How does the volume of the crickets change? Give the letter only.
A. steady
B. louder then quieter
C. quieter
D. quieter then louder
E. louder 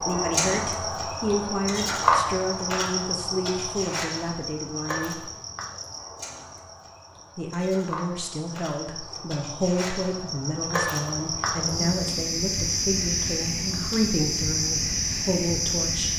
D.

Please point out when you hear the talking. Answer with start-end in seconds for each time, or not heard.
0.1-5.3, 7.3-16.1.